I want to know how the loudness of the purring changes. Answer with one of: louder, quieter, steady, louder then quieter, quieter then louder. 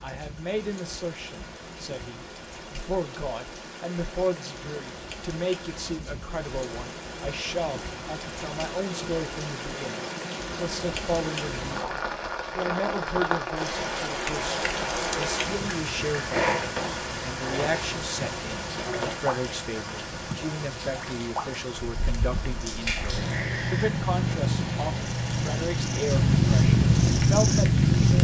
louder.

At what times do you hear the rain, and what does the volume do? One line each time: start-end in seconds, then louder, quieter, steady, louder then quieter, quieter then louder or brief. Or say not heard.
0.0-28.1 louder then quieter.